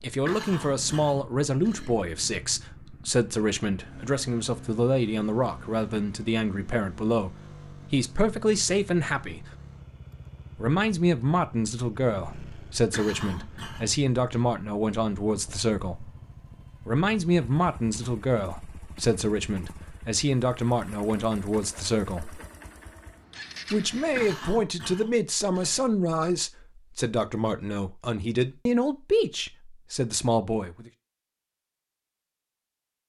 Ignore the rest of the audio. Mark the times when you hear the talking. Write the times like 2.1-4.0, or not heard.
0.0-9.5, 10.6-16.1, 16.9-22.4, 23.7-30.9.